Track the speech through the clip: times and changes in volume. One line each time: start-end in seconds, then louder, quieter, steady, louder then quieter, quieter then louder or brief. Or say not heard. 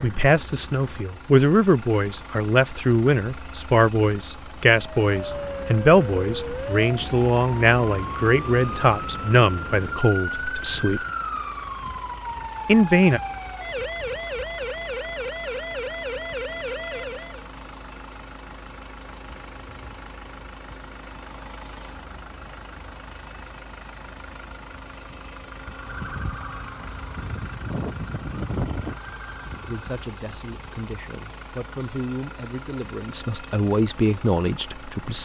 0.0-11.0 steady
12.7-13.2 brief
29.6-35.2 louder.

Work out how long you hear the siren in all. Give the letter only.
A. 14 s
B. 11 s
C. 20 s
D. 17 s
D.